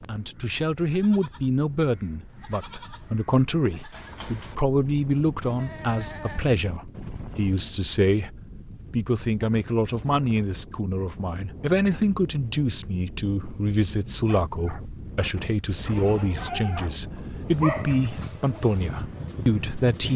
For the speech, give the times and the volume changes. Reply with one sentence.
You can hear the speech from 0.1 to 20.1 s, at a steady volume.